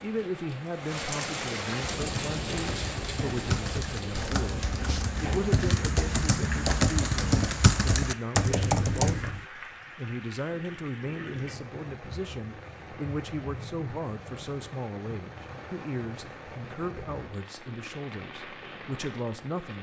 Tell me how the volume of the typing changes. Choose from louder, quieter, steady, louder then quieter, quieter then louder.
louder.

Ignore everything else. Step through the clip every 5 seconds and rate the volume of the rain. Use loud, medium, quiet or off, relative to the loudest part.
loud, medium, medium, medium.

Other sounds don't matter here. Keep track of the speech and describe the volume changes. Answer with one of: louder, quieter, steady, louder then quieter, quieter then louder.
steady.